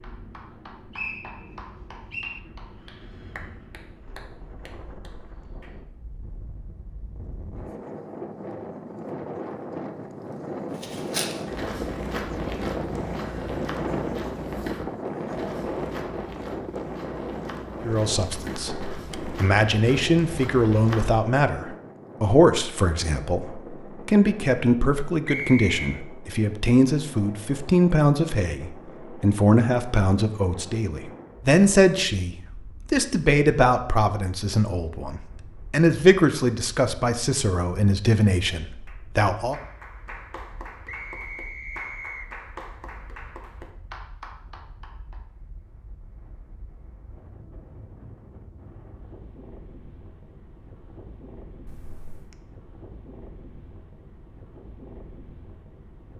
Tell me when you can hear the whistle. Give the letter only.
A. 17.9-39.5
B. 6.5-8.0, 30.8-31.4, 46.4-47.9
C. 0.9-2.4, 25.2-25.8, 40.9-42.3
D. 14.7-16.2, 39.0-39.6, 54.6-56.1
C.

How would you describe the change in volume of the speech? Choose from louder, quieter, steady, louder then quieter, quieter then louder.
steady.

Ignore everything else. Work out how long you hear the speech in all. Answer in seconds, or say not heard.
22 s.